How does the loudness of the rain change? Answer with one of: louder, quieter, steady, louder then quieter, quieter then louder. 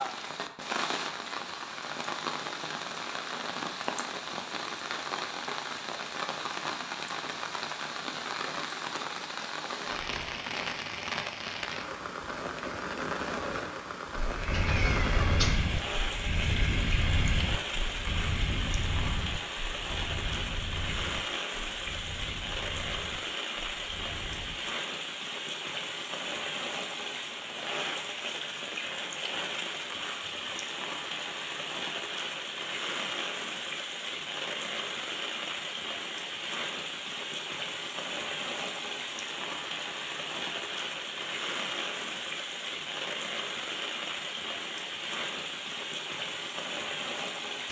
steady.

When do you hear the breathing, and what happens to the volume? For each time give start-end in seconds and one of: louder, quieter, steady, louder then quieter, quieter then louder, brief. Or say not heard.
14.2-24.6 quieter.